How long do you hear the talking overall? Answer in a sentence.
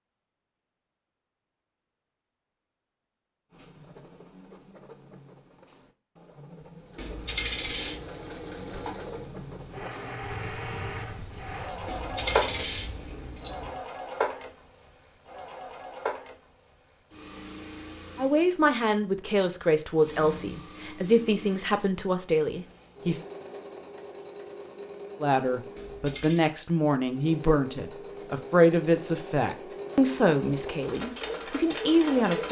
You can hear the talking for 12 seconds altogether.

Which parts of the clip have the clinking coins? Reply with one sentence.
You can hear the clinking coins from 7.0 to 8.1 s, from 11.8 to 13.8 s and from 25.8 to 26.4 s.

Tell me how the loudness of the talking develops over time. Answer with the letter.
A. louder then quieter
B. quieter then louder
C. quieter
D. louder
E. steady
E.